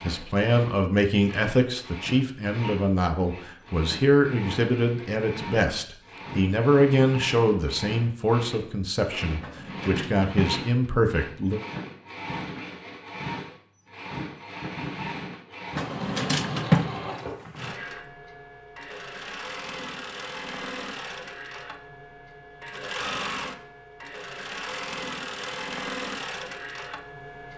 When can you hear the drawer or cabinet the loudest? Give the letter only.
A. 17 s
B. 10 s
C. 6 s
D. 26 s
A.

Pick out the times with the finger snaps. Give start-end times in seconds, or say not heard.
not heard.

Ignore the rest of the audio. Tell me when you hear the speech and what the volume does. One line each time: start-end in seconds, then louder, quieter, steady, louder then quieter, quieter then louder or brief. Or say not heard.
0.0-11.6 steady.